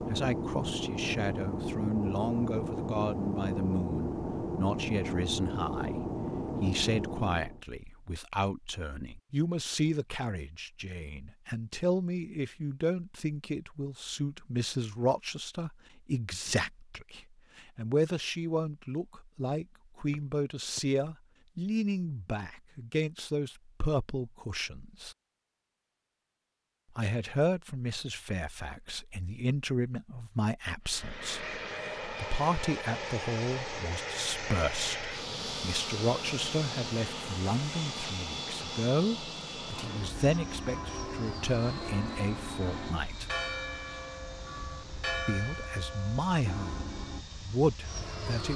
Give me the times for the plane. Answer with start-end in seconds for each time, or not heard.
0.0-7.6, 30.9-48.5.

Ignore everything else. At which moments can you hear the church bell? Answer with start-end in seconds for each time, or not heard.
39.8-47.2.